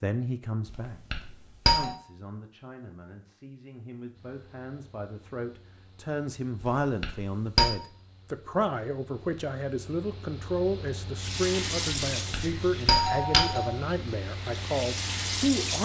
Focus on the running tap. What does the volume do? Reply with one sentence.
The volume of the running tap goes down, then up.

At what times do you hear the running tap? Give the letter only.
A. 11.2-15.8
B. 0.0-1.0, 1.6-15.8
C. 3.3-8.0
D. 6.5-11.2
A.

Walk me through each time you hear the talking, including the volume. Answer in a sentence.
You can hear the talking briefly from 0.0 to 1.0 s; and from 1.6 to 15.8 s, getting louder.